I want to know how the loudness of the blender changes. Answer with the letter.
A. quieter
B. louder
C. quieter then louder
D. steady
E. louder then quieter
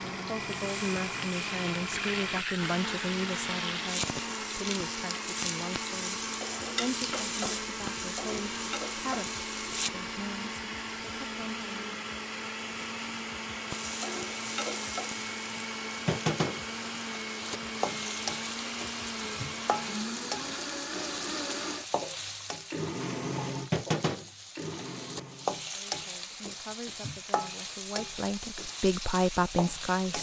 D.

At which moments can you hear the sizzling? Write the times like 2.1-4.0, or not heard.
0.1-9.9, 13.7-30.1.